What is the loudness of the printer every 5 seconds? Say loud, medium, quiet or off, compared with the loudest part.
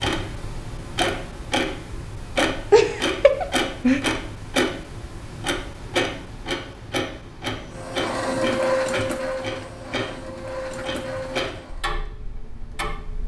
off, loud, medium.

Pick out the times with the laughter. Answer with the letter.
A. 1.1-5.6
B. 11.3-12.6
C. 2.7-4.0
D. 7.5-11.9
C.